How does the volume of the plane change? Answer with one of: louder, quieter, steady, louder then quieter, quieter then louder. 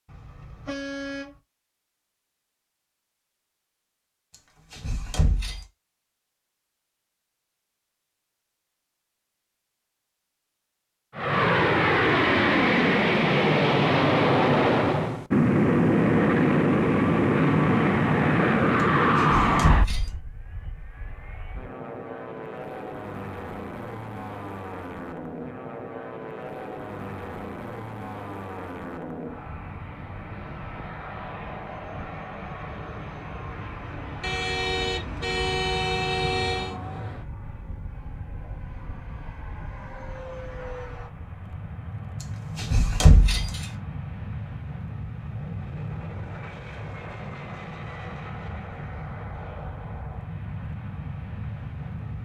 quieter.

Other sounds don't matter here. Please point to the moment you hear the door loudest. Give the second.
43 s.